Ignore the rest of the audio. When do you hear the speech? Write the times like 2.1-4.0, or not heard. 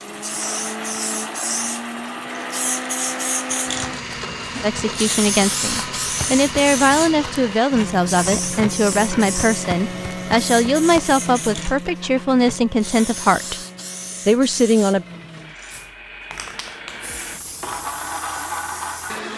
4.6-13.6, 14.2-15.1.